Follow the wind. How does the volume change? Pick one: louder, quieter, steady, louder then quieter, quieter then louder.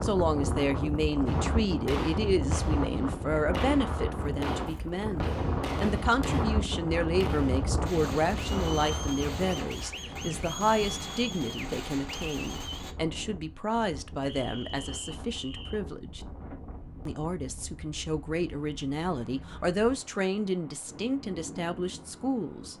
quieter.